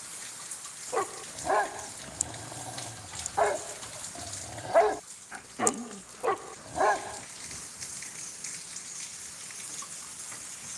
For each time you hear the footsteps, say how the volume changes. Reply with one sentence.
The footsteps can't be heard in this clip.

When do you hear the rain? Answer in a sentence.
You can hear the rain from 0.0 to 10.7 s.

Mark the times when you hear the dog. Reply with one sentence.
You can hear the dog from 0.9 to 7.2 s.